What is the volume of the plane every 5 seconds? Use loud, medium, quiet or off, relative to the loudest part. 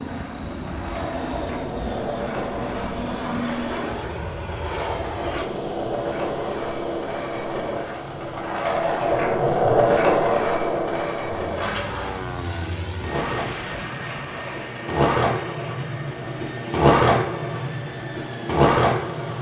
loud, loud, loud, medium.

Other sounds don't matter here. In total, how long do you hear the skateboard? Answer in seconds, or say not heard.
19 s.